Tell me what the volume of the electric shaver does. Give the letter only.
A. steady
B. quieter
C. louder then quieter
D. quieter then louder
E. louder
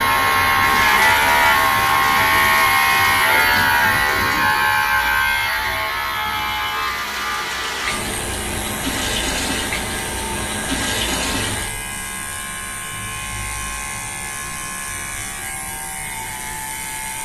B.